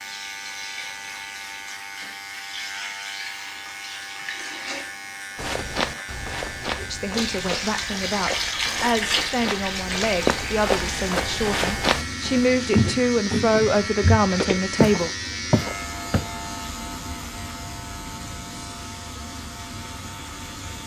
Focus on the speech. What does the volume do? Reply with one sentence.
The loudness of the speech goes up.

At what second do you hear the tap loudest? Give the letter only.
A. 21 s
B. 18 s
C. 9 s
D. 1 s
C.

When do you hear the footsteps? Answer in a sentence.
The footsteps can be heard from 5.3 to 16.2 s.